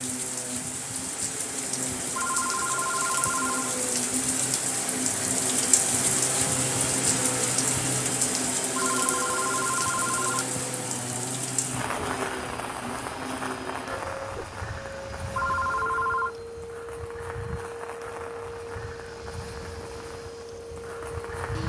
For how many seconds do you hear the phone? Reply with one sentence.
You can hear the phone for 4 seconds altogether.